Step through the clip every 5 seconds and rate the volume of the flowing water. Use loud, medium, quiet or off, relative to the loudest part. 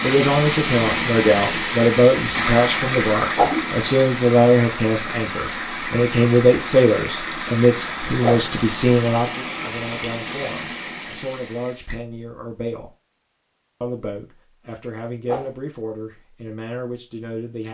loud, medium, medium, off.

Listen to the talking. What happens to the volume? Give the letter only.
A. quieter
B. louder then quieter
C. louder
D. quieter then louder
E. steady
A.